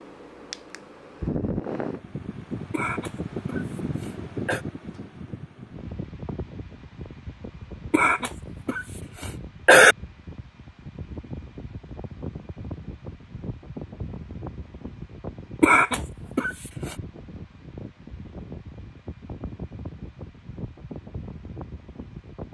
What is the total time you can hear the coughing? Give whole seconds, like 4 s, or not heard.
5 s.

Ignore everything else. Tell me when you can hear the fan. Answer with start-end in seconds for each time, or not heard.
0.0-22.4.